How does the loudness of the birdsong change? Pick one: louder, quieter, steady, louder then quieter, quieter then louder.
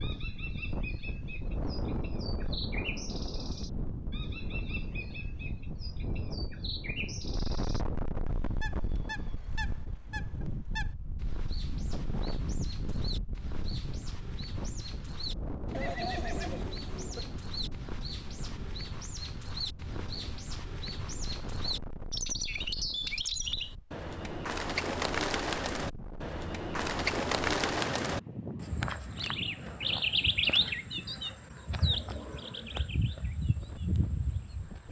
louder.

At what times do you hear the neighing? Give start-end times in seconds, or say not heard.
15.7-17.2.